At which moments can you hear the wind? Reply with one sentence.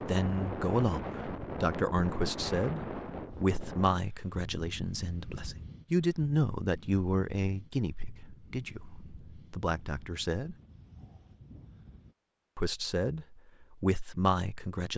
You can hear the wind from 0.0 to 12.2 s.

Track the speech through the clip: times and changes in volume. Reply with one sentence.
The speech can be heard from 0.0 to 10.6 s, getting quieter; and briefly from 12.6 to 14.9 s.